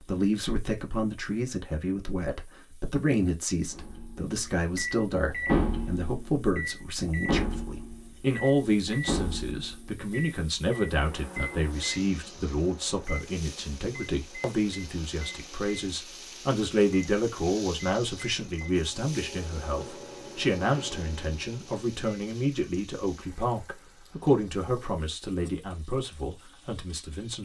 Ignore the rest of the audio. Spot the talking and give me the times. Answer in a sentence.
You can hear the talking from 0.0 to 27.4 s.